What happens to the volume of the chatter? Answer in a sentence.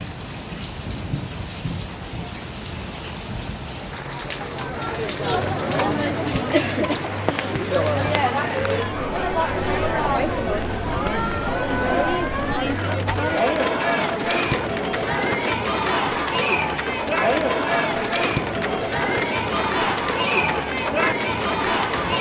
The loudness of the chatter stays about the same.